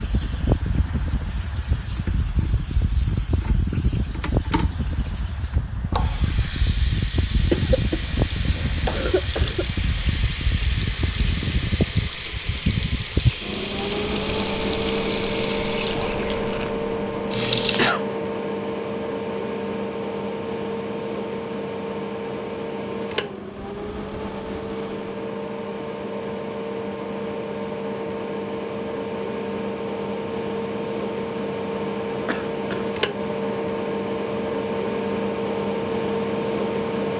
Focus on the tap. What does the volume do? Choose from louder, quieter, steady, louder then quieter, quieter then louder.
louder.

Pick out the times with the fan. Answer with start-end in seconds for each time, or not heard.
0.0-37.1.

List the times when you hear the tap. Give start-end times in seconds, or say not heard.
0.0-17.9.